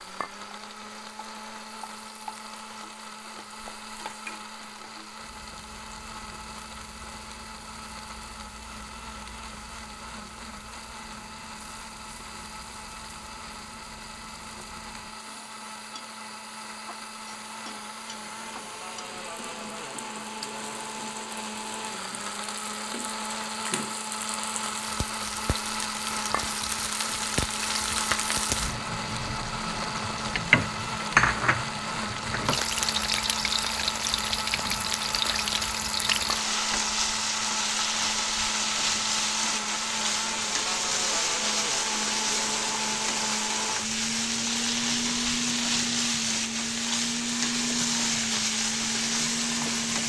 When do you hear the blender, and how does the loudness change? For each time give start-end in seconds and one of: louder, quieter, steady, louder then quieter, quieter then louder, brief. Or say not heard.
0.0-50.0 louder.